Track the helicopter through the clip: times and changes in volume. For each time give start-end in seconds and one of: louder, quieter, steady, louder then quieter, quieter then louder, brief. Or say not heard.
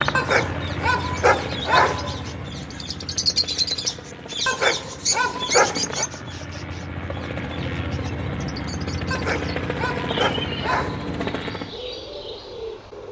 0.0-11.8 quieter then louder.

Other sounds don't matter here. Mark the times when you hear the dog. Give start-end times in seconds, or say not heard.
0.1-2.3, 4.5-6.0, 9.1-11.2.